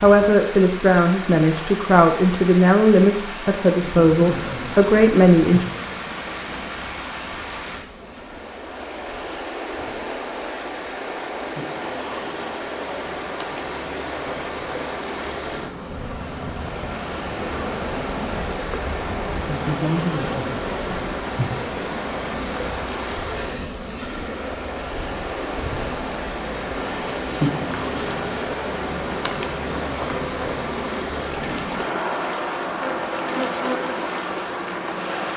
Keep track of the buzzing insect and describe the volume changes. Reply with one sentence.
The loudness of the buzzing insect goes up.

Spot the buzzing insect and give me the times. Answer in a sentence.
You can hear the buzzing insect from 3.7 to 35.3 s.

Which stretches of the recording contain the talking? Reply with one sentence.
The talking can be heard from 0.0 to 5.7 s.